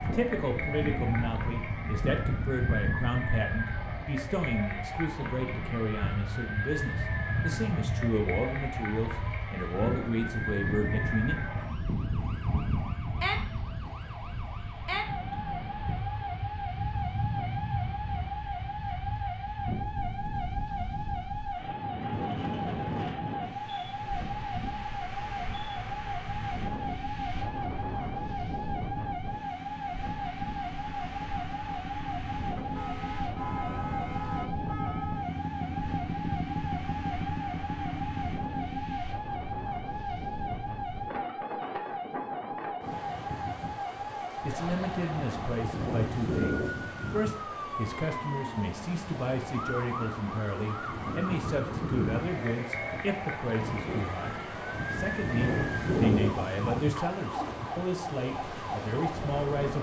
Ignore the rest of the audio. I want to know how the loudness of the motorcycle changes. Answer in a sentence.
The loudness of the motorcycle goes up.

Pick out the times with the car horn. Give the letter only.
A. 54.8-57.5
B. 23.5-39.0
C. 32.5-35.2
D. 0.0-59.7
C.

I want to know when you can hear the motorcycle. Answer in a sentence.
You can hear the motorcycle from 23.5 to 39.0 s.